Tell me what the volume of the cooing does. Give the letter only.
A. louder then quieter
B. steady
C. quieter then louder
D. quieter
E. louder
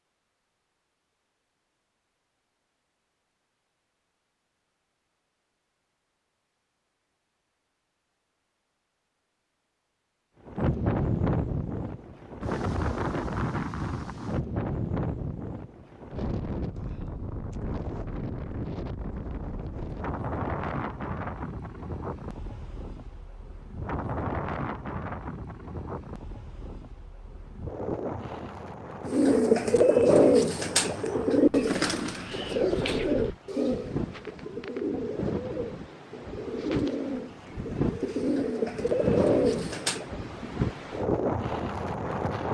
C.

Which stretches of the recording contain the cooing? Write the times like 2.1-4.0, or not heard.
29.1-40.0.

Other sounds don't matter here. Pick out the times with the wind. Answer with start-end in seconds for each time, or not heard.
10.4-42.5.